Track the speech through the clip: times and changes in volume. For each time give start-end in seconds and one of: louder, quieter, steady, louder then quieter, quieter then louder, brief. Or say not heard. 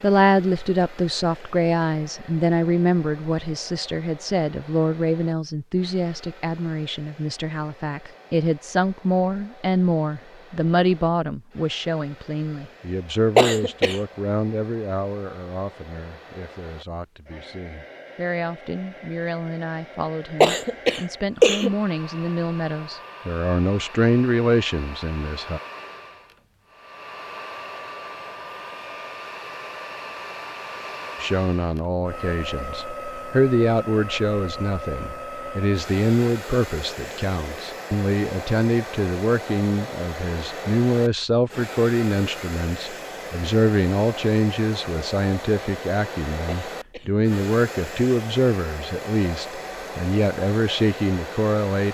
0.0-25.6 quieter then louder
31.2-51.9 steady.